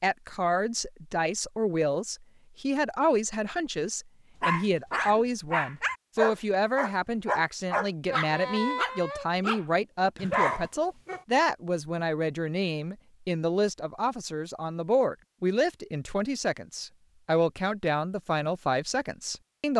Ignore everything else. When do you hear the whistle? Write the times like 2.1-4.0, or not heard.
not heard.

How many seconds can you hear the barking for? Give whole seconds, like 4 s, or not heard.
7 s.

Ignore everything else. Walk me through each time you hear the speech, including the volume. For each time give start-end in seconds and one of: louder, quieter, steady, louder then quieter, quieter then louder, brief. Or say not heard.
0.0-19.7 steady.